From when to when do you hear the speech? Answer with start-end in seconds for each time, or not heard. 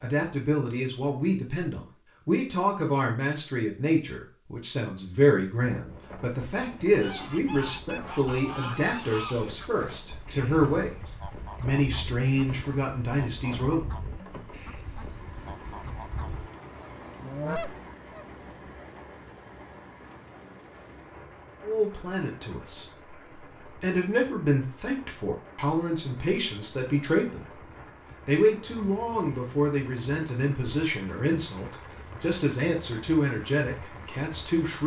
0.0-13.9, 21.6-27.6, 28.2-34.8.